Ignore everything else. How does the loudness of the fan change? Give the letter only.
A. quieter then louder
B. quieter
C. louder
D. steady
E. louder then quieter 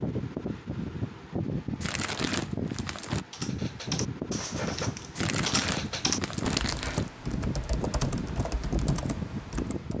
D.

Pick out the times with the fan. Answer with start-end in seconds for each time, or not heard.
0.0-9.9.